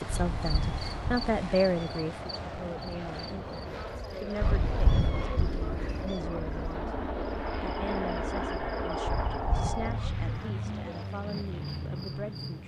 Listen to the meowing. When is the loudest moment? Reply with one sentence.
The loudest moment of the meowing is at 5 seconds.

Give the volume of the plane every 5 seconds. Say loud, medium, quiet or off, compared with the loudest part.
medium, loud, loud.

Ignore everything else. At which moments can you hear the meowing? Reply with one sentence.
The meowing can be heard from 0.1 to 2.0 s, from 4.4 to 6.2 s and from 9.1 to 10.3 s.